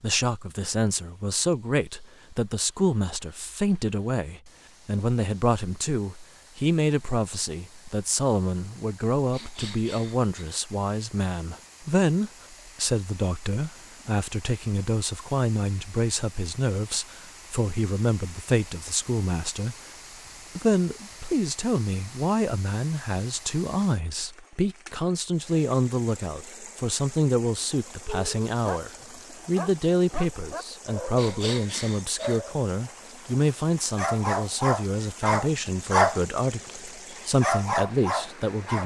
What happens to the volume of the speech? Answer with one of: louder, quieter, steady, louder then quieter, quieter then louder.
steady.